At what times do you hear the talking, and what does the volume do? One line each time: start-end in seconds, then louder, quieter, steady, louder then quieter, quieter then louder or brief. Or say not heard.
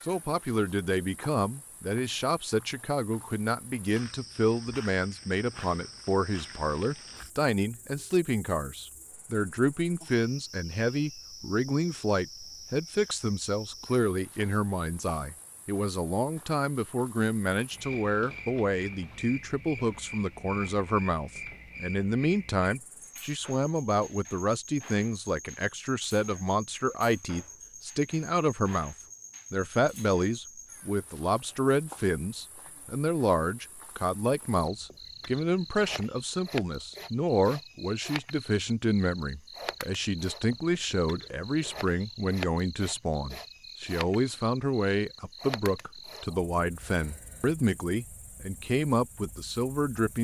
0.0-50.2 steady.